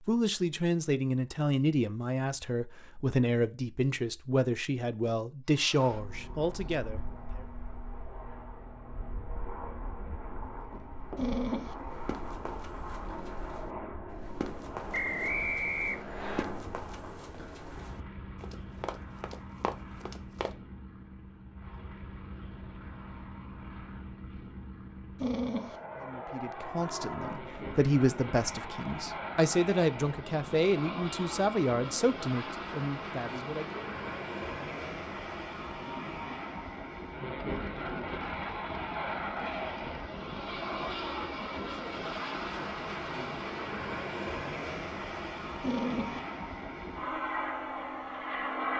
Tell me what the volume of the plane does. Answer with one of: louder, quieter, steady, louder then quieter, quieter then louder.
louder.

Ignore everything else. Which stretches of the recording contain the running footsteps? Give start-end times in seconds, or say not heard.
10.6-20.6.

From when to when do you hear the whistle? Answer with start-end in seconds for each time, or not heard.
14.9-16.4.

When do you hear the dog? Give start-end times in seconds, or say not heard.
11.2-11.8, 25.1-25.8, 45.6-46.2.